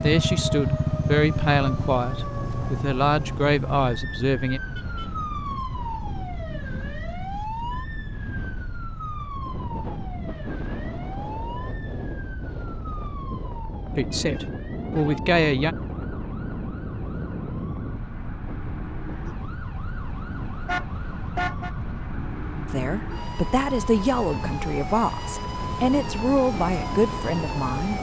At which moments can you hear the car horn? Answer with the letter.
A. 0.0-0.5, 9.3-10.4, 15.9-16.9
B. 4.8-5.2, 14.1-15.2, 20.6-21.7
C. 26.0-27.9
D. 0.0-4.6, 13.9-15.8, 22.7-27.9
B.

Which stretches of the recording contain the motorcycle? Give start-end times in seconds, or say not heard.
0.0-1.9.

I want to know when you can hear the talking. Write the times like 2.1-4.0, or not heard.
0.0-4.6, 13.9-15.8, 22.7-27.9.